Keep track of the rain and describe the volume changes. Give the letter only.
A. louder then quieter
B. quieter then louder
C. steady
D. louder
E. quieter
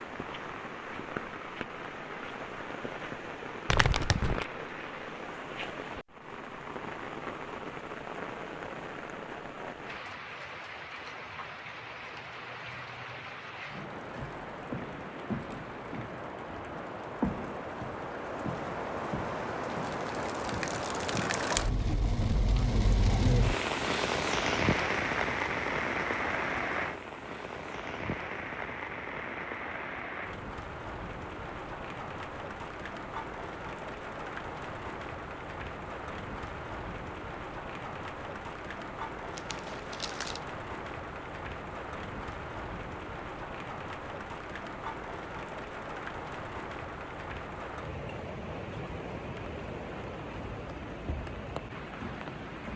A.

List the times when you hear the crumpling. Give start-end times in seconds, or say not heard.
3.6-4.5, 39.4-40.4.